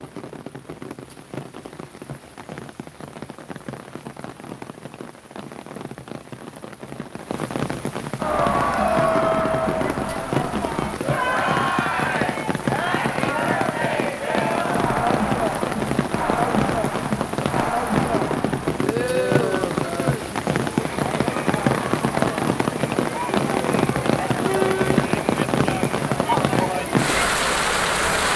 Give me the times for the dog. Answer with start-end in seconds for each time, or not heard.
not heard.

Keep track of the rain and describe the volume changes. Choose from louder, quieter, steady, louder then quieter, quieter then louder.
louder.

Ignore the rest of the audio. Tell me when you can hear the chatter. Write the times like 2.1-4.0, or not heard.
8.2-28.3.